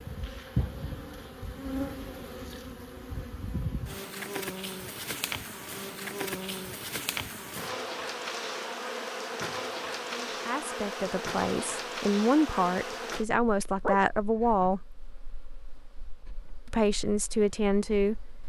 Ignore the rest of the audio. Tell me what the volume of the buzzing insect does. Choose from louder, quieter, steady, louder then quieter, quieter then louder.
quieter.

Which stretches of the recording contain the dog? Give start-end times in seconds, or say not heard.
13.8-14.7.